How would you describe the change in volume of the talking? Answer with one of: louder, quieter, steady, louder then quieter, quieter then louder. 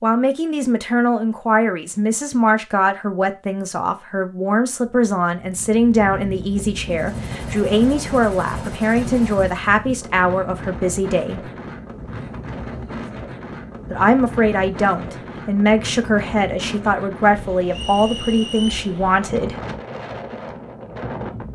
steady.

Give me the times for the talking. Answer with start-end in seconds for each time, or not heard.
0.0-11.5, 13.9-19.6.